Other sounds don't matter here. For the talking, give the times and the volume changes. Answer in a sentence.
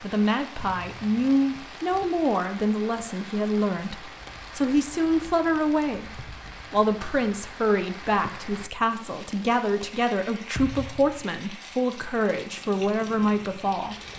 You can hear the talking from 0.0 to 13.9 s, at a steady volume.